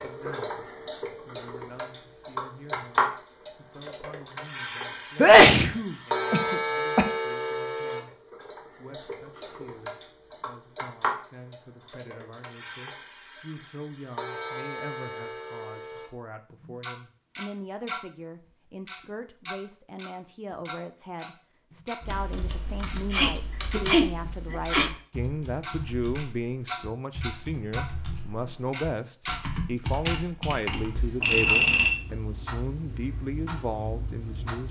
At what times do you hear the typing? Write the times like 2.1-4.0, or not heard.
22.0-31.2.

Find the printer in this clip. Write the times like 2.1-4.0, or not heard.
not heard.